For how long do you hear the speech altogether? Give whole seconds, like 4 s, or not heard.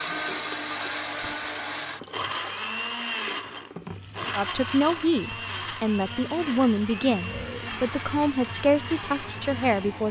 6 s.